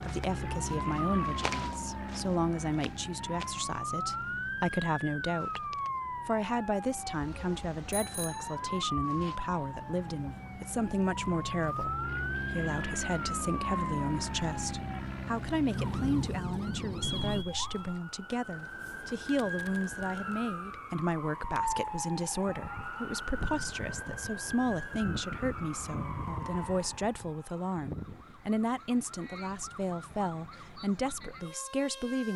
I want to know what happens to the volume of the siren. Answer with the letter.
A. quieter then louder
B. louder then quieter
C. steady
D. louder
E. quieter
E.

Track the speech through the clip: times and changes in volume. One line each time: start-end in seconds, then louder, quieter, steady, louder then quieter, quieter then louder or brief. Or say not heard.
0.0-32.3 steady.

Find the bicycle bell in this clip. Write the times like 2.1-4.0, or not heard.
7.9-8.6, 17.0-18.0.